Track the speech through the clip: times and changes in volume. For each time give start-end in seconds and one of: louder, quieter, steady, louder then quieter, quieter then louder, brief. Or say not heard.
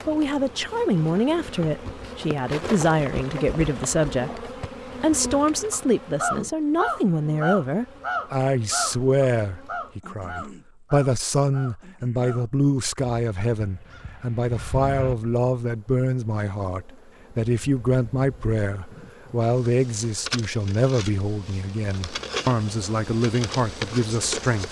0.1-24.6 steady.